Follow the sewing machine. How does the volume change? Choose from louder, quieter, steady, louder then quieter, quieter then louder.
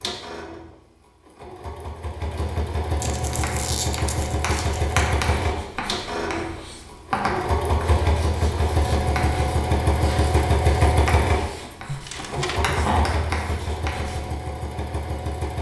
louder then quieter.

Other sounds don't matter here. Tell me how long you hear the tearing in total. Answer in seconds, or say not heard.
3 s.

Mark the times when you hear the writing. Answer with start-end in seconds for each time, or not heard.
3.2-14.2.